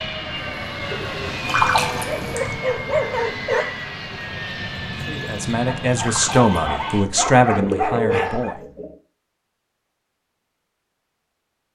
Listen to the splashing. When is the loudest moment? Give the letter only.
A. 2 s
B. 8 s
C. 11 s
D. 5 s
A.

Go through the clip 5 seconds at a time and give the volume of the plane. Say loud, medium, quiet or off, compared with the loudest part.
loud, loud, off.